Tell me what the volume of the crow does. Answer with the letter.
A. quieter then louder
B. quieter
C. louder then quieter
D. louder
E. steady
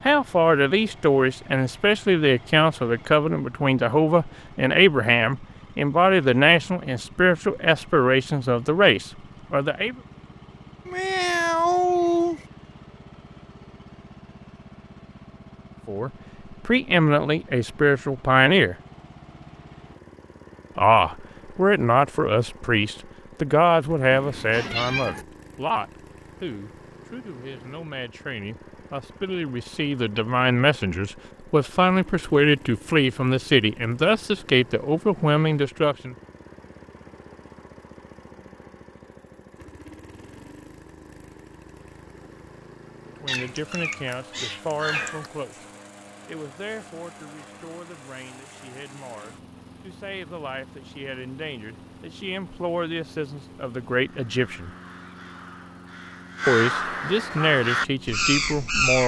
D.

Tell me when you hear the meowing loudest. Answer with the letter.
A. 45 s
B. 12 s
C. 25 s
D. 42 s
B.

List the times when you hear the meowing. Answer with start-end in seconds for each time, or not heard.
10.8-12.4, 24.1-25.2, 43.2-45.3.